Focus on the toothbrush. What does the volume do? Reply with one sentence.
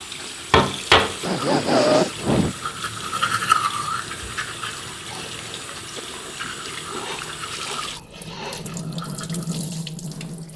The loudness of the toothbrush goes down.